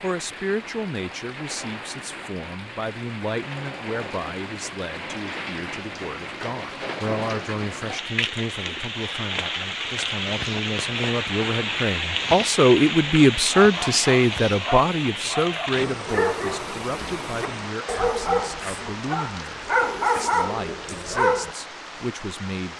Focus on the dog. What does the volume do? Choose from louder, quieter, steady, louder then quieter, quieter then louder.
louder.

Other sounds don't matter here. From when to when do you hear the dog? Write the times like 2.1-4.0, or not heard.
13.5-21.6.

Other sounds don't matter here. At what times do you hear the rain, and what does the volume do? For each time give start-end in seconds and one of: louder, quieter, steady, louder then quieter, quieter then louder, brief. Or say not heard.
0.0-22.7 louder then quieter.